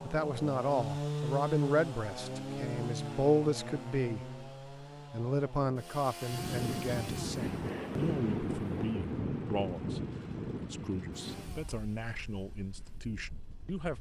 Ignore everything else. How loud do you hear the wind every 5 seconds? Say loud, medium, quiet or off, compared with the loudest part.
off, loud, medium.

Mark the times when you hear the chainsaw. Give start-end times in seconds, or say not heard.
0.0-13.9.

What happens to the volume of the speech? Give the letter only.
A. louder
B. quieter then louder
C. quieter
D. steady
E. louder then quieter
C.